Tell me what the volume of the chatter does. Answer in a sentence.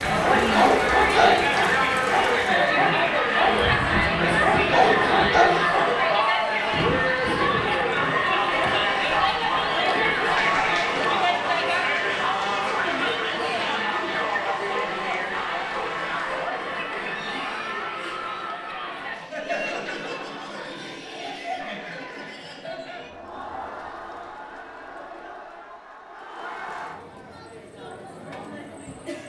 The loudness of the chatter goes down.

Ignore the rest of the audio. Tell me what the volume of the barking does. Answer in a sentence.
The loudness of the barking goes down, then up.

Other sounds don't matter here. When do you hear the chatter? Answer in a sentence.
You can hear the chatter from 0.0 to 29.2 s.